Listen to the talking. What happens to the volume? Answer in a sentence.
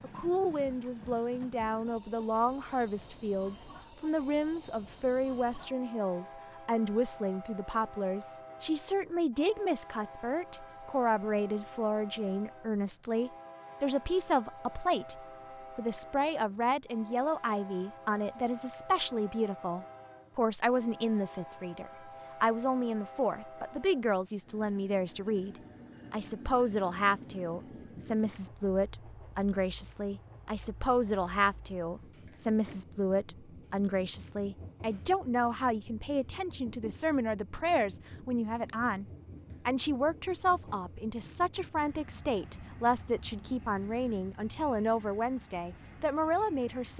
The loudness of the talking stays about the same.